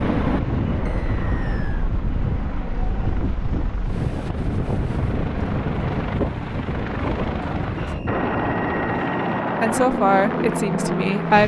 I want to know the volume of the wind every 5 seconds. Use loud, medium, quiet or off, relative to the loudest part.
loud, loud, off.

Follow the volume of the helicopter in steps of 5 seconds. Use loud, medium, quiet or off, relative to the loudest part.
medium, loud, loud.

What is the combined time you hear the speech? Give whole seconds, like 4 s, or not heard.
2 s.